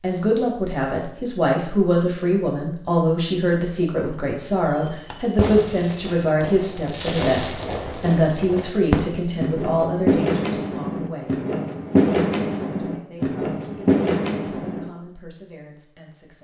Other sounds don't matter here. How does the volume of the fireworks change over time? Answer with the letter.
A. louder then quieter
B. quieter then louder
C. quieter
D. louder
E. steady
D.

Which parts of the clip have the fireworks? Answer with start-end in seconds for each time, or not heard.
4.7-14.9.